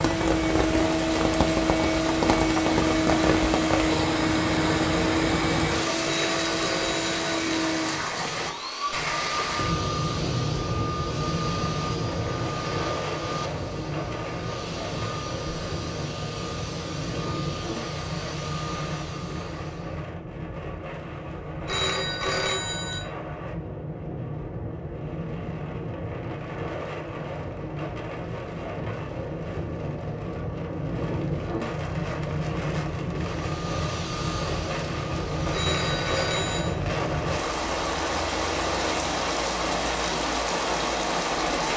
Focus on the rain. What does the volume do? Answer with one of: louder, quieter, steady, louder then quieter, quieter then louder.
quieter then louder.